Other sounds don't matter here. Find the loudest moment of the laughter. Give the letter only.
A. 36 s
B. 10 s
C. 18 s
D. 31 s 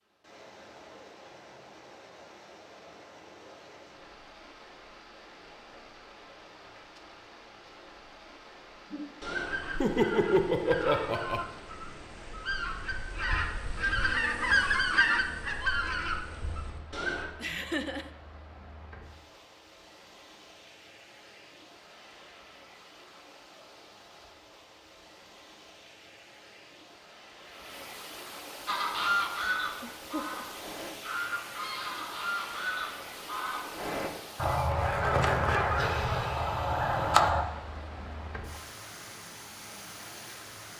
B.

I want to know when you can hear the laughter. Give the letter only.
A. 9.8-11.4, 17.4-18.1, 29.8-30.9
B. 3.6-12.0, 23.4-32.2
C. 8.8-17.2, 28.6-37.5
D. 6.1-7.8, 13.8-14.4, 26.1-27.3
A.